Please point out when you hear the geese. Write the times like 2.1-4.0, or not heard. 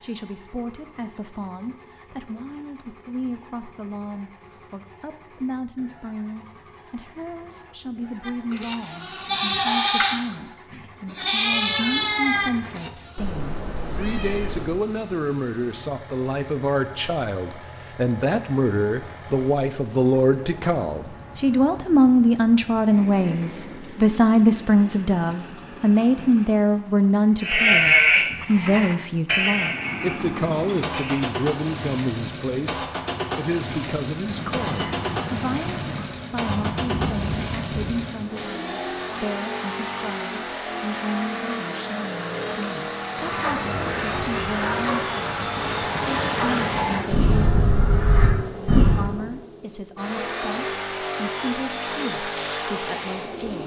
43.0-49.0.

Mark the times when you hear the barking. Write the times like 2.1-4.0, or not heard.
not heard.